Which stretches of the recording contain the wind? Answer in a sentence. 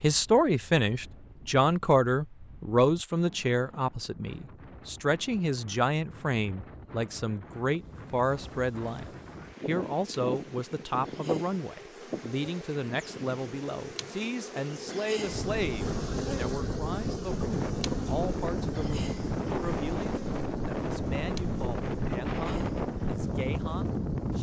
You can hear the wind from 0.0 to 24.3 s.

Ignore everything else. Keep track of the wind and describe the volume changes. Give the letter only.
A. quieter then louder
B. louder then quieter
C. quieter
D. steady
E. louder
E.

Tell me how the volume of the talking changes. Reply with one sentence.
The volume of the talking goes down.